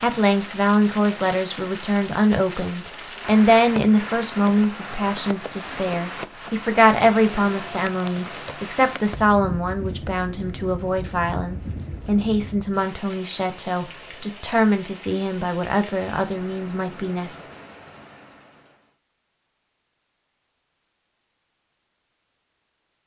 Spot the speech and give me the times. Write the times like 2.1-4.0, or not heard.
0.0-17.4.